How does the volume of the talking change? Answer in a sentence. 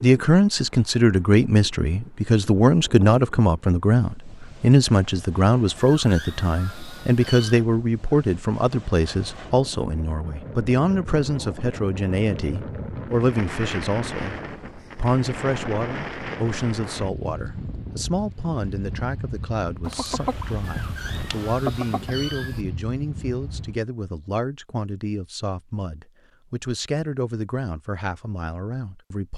The loudness of the talking goes down.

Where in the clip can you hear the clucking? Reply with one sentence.
The clucking can be heard from 19.9 to 22.1 s.